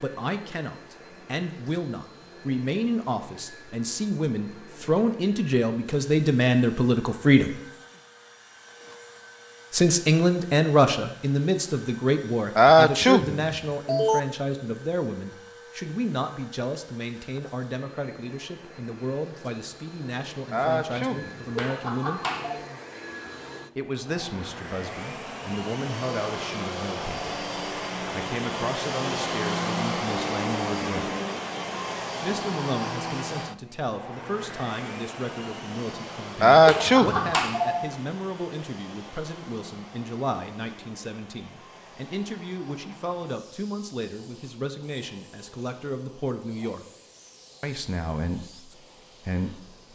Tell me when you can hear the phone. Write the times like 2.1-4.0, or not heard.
21.6-22.6, 36.6-37.9.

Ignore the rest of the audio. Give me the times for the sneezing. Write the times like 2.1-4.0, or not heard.
12.6-14.2, 20.5-21.5, 36.4-37.3.